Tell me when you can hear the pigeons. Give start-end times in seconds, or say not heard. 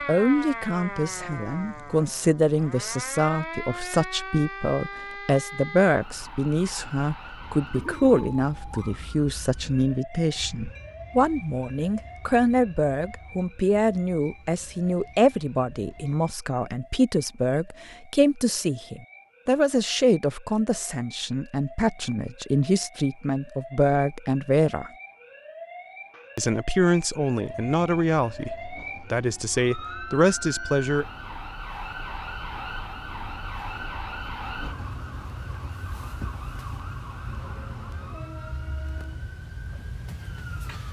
not heard.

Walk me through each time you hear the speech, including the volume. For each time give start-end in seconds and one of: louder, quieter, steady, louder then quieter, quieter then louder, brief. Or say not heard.
0.1-24.9 steady
26.4-31.1 quieter then louder.